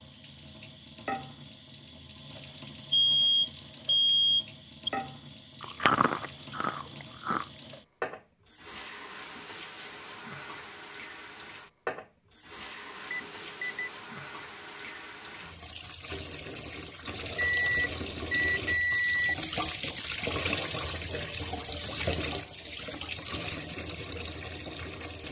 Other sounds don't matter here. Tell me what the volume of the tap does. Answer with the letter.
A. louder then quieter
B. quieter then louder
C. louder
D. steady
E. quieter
C.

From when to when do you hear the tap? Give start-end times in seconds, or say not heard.
0.0-25.2.